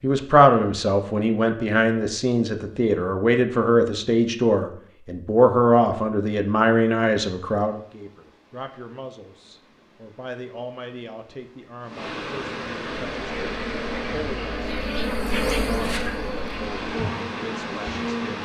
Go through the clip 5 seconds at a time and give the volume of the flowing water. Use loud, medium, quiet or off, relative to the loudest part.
off, quiet, loud, loud.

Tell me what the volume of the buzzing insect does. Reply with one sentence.
The loudness of the buzzing insect goes up, then down.